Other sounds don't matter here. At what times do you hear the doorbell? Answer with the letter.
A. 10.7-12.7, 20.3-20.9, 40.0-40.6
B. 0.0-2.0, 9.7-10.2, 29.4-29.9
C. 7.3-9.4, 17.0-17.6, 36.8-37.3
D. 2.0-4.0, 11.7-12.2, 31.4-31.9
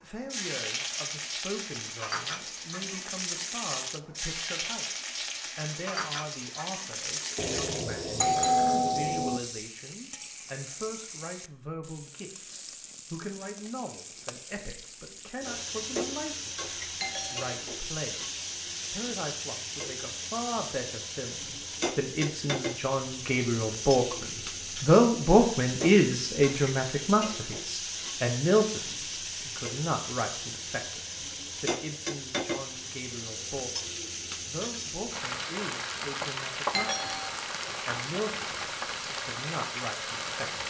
C.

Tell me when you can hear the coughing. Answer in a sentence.
You can't hear the coughing here.